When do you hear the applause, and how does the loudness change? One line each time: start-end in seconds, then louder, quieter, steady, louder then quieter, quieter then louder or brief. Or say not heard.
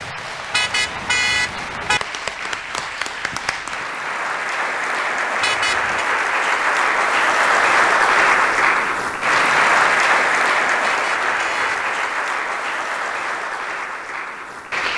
0.0-14.9 louder then quieter.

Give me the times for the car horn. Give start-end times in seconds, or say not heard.
0.5-2.0, 5.4-6.0, 10.8-12.1.